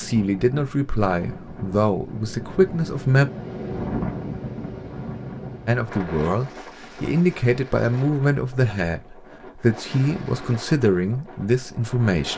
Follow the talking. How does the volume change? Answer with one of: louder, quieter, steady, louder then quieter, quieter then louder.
steady.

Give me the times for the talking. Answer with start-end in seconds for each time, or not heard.
0.0-3.3, 5.7-12.3.